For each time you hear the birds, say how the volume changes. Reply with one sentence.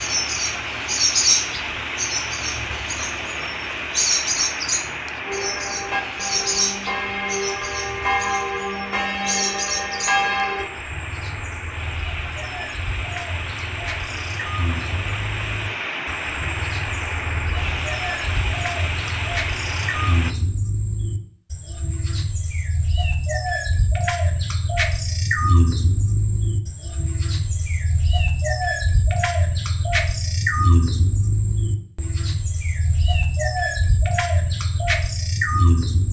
The birds can be heard from 0.0 to 36.0 s, getting quieter then louder.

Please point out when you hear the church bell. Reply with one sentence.
The church bell can be heard from 5.2 to 10.7 s.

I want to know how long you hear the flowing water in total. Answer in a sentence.
The flowing water can be heard for 20 seconds in total.